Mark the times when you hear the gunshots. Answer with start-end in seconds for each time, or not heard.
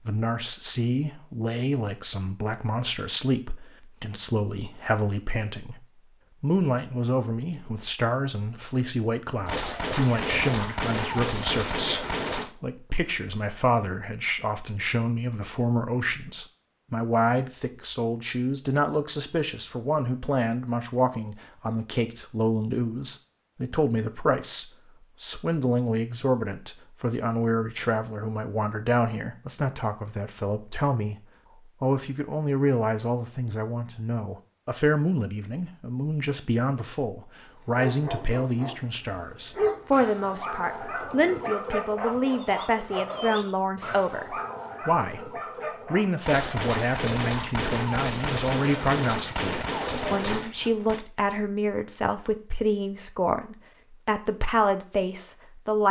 9.4-12.5, 46.2-51.0.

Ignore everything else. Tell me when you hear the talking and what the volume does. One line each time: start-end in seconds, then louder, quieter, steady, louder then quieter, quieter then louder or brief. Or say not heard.
0.0-55.8 steady.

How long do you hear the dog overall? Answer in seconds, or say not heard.
9 s.